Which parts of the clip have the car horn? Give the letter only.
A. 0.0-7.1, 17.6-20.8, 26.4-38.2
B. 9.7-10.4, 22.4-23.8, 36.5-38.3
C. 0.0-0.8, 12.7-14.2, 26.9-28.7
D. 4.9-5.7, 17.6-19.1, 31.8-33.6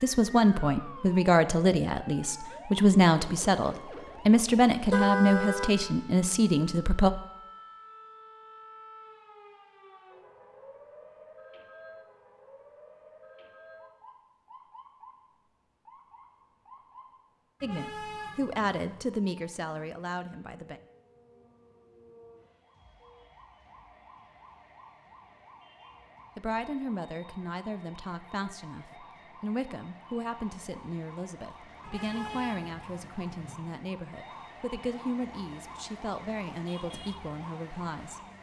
D.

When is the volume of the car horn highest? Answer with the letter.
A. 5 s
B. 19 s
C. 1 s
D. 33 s
A.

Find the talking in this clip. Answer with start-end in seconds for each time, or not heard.
0.0-7.1, 17.6-20.8, 26.4-38.2.